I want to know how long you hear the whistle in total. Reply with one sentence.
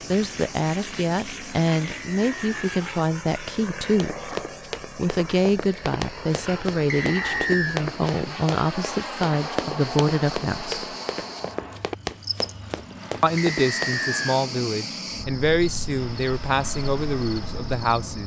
The whistle can be heard for 3 seconds in total.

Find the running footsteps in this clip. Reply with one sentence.
You can hear the running footsteps from 4.0 to 14.0 s.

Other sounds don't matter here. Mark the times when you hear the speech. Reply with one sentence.
You can hear the speech from 0.1 to 4.2 s, from 5.0 to 10.9 s and from 13.2 to 18.2 s.